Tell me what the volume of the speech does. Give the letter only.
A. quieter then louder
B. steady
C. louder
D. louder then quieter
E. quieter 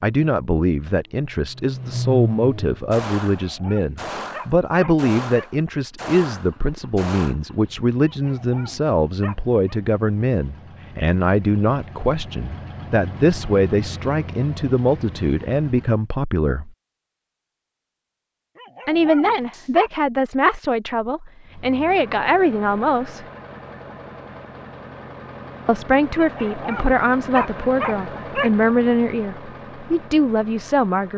B.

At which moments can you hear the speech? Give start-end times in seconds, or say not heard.
0.0-16.7, 18.9-23.2, 25.6-31.1.